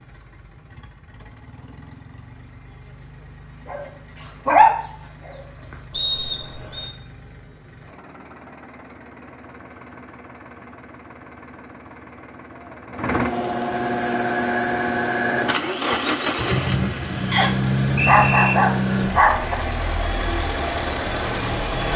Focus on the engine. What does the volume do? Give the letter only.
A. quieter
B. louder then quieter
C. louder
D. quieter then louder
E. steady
C.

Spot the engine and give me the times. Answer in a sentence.
The engine can be heard from 0.0 to 21.9 s.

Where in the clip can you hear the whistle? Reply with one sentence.
You can hear the whistle from 5.9 to 6.9 s and from 17.3 to 18.6 s.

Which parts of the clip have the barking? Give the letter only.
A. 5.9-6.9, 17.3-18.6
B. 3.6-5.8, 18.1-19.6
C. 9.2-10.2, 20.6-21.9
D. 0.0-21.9
B.